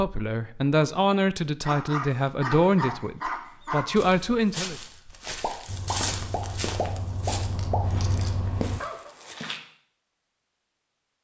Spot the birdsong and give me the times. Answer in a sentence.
You can't hear the birdsong here.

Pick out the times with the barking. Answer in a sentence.
The barking can be heard from 1.6 to 4.0 s and from 7.5 to 9.1 s.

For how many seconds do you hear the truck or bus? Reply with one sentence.
You can hear the truck or bus for 3 seconds altogether.